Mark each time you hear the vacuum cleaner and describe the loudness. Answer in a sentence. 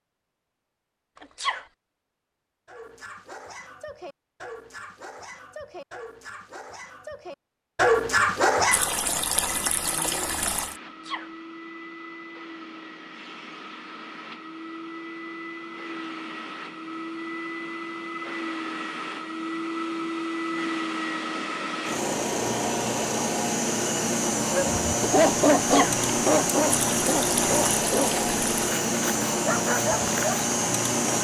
You can hear the vacuum cleaner from 9.6 to 31.1 s, getting louder.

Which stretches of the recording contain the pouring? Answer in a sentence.
You can hear the pouring from 8.7 to 10.8 s and from 26.7 to 28.8 s.